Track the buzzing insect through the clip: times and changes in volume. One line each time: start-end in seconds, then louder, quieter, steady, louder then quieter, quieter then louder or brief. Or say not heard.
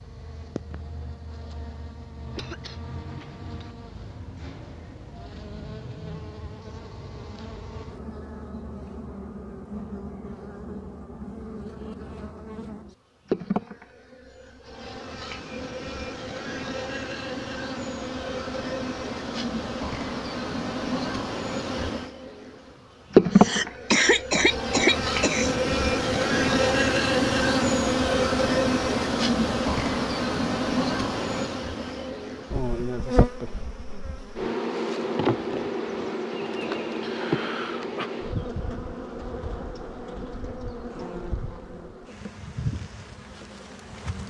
0.0-44.2 louder then quieter.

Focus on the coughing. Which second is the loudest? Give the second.
24 s.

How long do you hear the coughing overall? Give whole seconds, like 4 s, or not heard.
5 s.